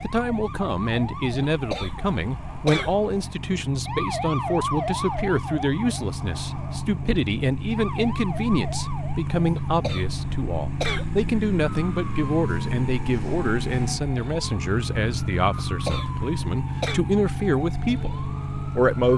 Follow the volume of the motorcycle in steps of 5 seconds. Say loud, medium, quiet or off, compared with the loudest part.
medium, loud, loud, loud.